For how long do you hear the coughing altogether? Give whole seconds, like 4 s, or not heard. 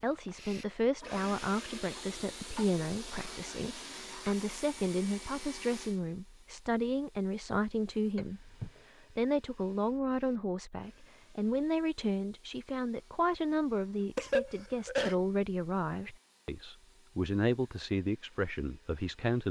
3 s.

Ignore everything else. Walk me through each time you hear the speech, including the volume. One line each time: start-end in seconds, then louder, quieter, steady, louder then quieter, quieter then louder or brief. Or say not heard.
0.0-19.4 steady.